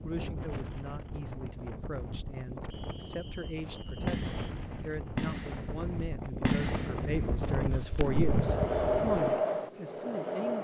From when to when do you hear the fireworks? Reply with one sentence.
You can hear the fireworks from 3.6 to 9.4 s.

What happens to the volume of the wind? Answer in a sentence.
The volume of the wind goes up.